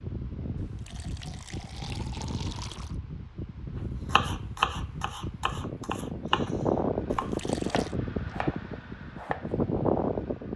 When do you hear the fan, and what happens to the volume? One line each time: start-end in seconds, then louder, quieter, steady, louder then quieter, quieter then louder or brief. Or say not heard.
0.0-10.5 louder.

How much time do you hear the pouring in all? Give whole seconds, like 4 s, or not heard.
3 s.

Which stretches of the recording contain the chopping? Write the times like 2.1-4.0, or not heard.
4.1-9.8.